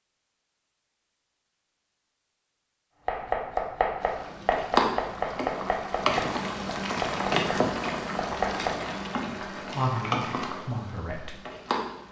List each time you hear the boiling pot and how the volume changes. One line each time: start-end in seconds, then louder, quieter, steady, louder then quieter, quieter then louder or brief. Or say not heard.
4.0-12.0 quieter.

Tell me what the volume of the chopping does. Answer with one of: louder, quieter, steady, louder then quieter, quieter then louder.
quieter.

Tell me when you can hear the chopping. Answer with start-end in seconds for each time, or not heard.
3.0-8.8.